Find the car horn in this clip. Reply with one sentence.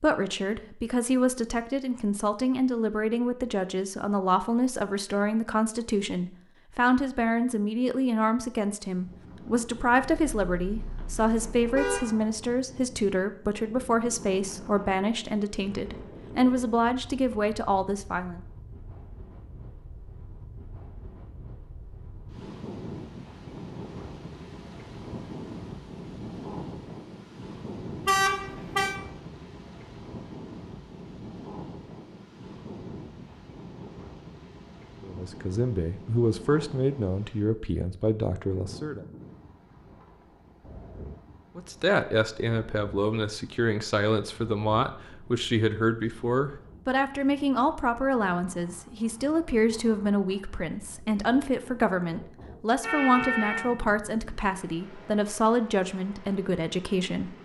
The car horn can be heard from 10.0 to 12.0 s, from 28.1 to 28.9 s and from 52.8 to 53.7 s.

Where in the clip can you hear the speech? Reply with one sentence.
You can hear the speech from 0.0 to 18.4 s, from 35.0 to 39.0 s and from 41.5 to 57.4 s.